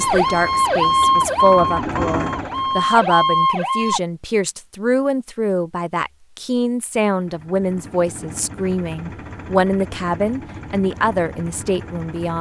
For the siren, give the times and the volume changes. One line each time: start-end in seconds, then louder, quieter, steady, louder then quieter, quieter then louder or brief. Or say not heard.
0.0-4.0 quieter then louder.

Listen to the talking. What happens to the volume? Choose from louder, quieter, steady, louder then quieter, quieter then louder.
steady.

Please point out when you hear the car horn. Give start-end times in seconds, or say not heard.
not heard.